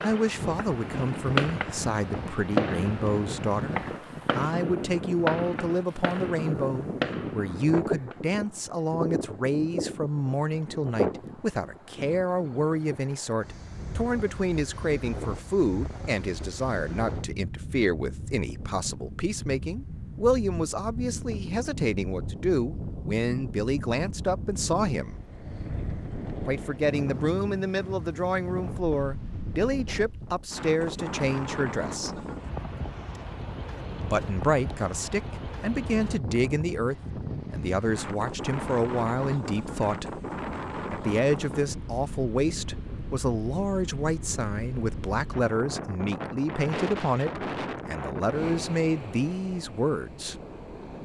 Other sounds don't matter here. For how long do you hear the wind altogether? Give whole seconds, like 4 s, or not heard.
51 s.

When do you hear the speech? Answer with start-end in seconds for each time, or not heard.
0.0-25.1, 26.4-32.1, 34.0-40.1, 40.9-50.4.